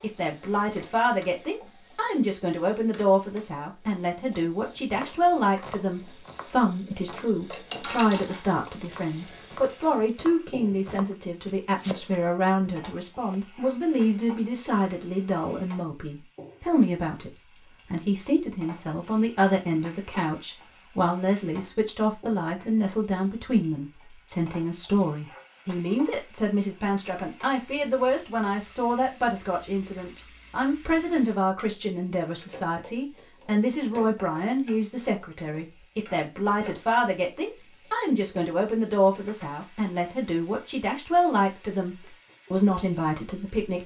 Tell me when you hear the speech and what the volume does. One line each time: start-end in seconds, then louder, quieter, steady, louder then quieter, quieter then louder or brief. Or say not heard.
0.0-43.8 steady.